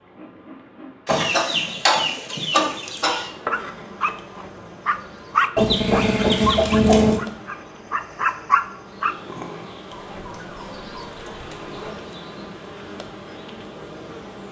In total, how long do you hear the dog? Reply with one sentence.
The dog can be heard for 6 seconds in total.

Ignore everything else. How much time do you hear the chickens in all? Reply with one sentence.
You can hear the chickens for 6 seconds altogether.